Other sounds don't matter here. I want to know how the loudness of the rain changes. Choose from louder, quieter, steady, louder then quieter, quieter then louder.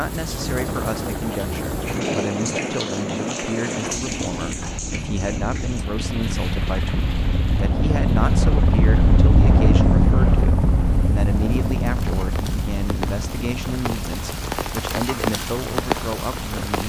quieter then louder.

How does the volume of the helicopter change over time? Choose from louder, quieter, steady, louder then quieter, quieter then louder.
louder then quieter.